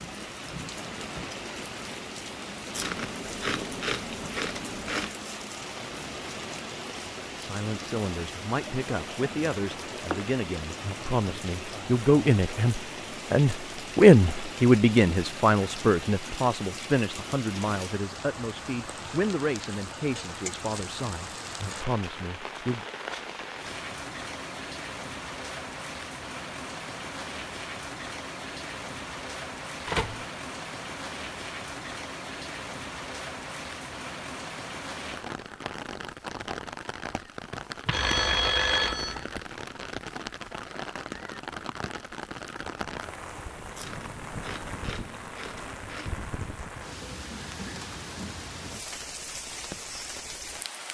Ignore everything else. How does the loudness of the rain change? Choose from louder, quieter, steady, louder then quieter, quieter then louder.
steady.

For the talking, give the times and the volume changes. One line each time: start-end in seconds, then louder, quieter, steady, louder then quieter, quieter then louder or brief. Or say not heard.
7.3-22.9 louder then quieter.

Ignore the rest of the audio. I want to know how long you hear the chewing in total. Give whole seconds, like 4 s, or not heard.
5 s.